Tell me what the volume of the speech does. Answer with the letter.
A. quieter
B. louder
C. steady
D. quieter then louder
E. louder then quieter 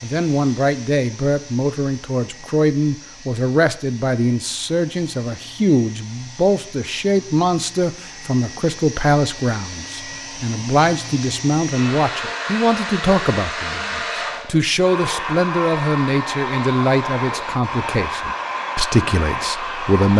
C.